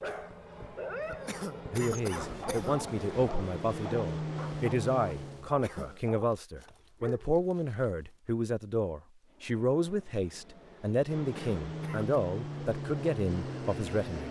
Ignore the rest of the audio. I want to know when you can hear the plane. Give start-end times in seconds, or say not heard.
0.0-5.5, 9.2-14.2.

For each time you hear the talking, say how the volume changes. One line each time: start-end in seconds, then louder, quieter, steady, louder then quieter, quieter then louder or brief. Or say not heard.
1.7-14.2 steady.